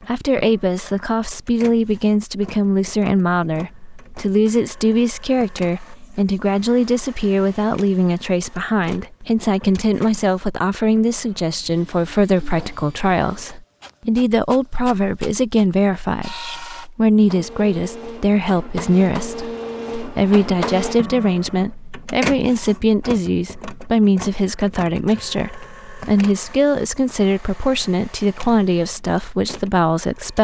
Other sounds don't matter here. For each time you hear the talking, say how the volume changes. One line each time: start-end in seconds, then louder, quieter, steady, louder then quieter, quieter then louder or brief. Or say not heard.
0.1-30.3 steady.